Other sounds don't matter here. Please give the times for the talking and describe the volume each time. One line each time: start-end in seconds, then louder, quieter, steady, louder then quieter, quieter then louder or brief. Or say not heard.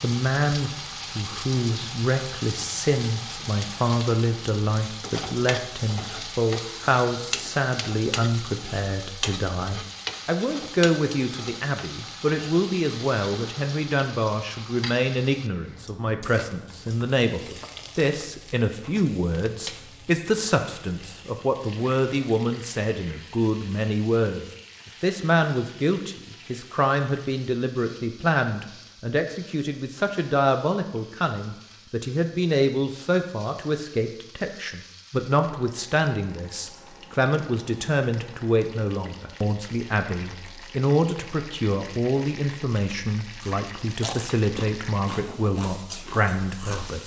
0.0-47.0 steady.